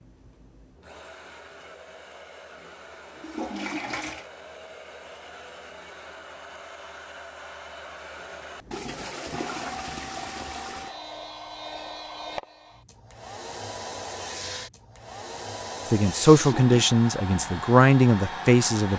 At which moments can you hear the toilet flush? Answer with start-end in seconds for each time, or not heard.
3.1-4.3, 8.7-10.9, 16.4-16.9.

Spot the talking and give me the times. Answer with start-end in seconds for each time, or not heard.
15.8-18.9.